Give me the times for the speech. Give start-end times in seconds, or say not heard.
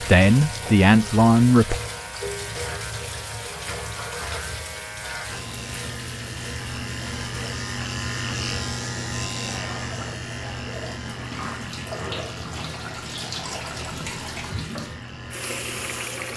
0.0-1.8.